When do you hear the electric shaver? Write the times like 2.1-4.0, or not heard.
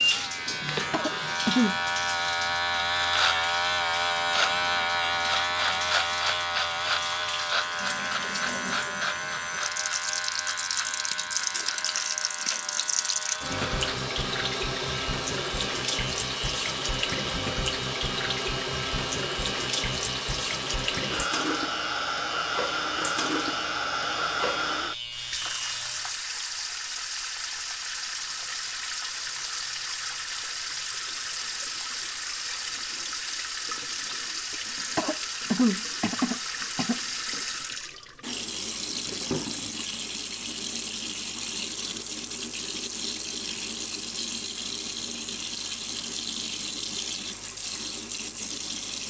0.0-26.2.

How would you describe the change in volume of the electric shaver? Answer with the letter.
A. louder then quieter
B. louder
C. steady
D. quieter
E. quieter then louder
D.